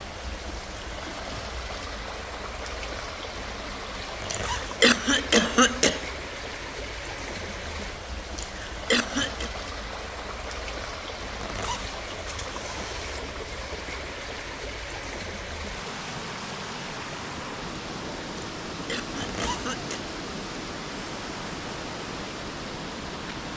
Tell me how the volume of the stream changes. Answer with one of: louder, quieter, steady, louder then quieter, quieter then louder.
steady.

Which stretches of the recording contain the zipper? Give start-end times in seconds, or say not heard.
4.2-4.8, 11.4-13.2, 19.2-19.8.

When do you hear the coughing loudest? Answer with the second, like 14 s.
5 s.